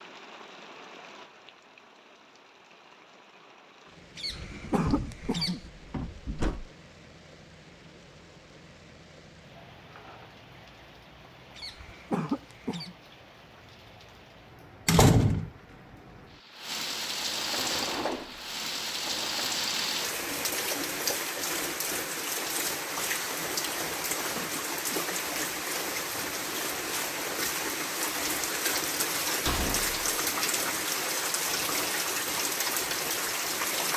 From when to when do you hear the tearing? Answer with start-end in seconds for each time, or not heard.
not heard.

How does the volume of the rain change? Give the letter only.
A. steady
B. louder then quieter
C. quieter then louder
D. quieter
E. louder
E.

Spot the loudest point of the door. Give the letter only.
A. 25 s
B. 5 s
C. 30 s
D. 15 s
D.